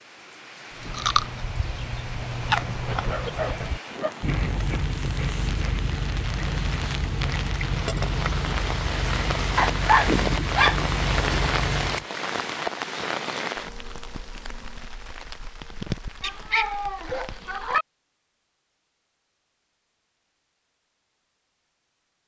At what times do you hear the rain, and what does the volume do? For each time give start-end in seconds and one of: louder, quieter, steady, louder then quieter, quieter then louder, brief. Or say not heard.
0.0-17.8 louder then quieter.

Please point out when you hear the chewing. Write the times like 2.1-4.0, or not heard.
0.7-12.1.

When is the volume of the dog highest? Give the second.
10 s.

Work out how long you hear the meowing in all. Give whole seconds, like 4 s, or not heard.
2 s.